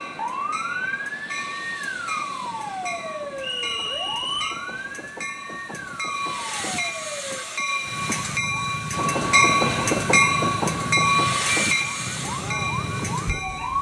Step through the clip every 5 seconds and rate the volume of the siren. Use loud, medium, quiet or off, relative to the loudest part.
loud, medium, loud.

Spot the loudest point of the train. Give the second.
10 s.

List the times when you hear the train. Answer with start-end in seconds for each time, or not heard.
0.0-13.7.